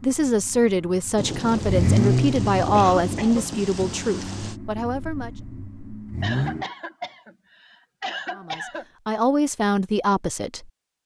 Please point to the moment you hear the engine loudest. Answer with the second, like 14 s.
2 s.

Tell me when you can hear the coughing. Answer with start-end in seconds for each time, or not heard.
2.7-3.6, 6.2-8.8.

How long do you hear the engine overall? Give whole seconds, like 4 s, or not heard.
7 s.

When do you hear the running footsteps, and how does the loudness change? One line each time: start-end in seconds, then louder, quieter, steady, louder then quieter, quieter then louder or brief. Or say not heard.
not heard.